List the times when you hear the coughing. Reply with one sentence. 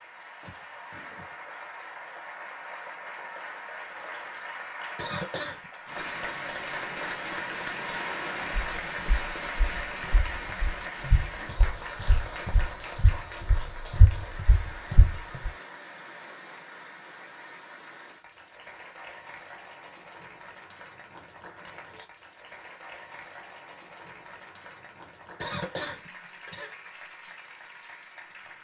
The coughing can be heard from 5.0 to 5.7 s and from 25.4 to 26.8 s.